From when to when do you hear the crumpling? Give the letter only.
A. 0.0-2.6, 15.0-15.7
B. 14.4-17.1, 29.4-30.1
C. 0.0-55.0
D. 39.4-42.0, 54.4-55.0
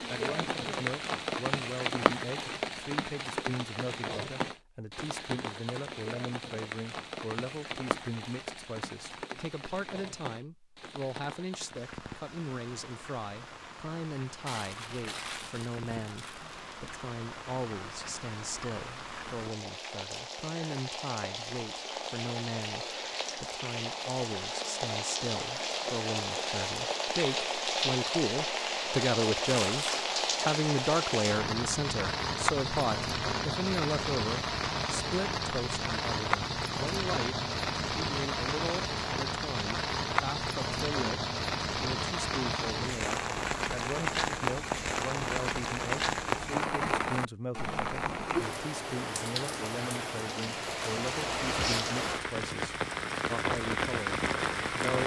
B.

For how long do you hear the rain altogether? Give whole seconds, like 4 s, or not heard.
55 s.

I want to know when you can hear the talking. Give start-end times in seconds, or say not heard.
0.0-55.0.